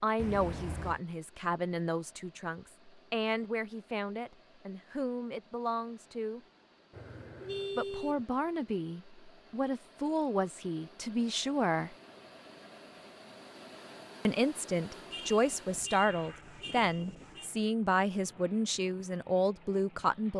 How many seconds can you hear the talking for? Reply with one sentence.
The talking can be heard for 17 seconds in total.